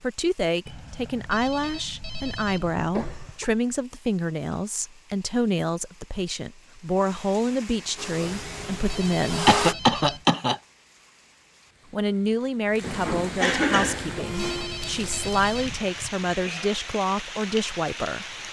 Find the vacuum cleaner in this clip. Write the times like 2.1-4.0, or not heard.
8.0-9.8, 14.0-15.1.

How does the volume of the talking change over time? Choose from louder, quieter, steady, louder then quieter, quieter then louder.
steady.